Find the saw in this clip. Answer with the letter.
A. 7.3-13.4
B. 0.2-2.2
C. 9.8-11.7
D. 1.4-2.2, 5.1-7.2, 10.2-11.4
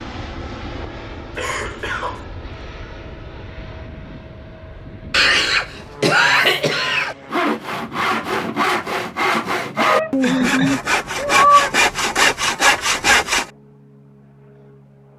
A.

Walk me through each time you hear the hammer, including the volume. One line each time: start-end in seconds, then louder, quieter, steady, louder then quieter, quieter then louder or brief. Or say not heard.
not heard.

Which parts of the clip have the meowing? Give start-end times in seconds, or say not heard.
9.8-11.7.